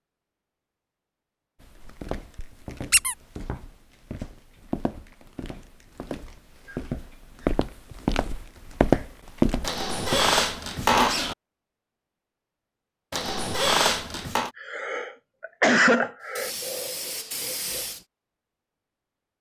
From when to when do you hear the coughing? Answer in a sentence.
The coughing can be heard from 14.2 to 16.5 s.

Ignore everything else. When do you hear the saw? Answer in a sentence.
The saw can't be heard in this clip.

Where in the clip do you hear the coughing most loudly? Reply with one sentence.
The volume of the coughing peaks at 16 seconds.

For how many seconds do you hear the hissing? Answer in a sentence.
You can hear the hissing for 2 seconds altogether.